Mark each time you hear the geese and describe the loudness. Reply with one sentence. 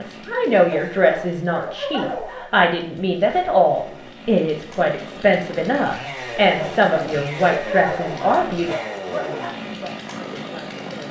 The geese can't be heard in this clip.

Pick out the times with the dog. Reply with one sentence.
The dog can be heard from 0.7 to 2.5 s and from 6.6 to 9.6 s.